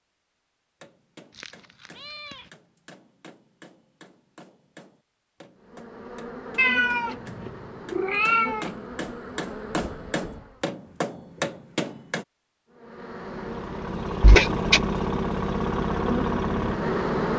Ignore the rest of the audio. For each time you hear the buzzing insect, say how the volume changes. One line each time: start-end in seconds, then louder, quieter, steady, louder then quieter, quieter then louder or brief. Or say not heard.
5.5-10.7 steady
12.7-17.3 louder.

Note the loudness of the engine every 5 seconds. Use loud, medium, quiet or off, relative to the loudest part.
off, off, loud, loud.